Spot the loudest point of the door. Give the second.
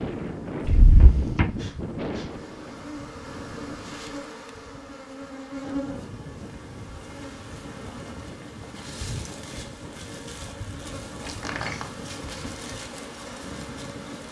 1 s.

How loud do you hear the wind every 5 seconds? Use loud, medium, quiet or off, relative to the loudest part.
loud, medium, medium.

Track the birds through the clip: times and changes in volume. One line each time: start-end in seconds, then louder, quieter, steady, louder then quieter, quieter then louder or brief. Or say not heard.
not heard.